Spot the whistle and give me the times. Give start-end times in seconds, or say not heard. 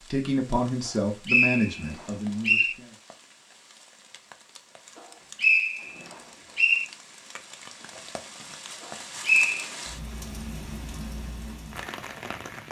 0.8-2.8, 5.3-6.8, 9.2-9.7.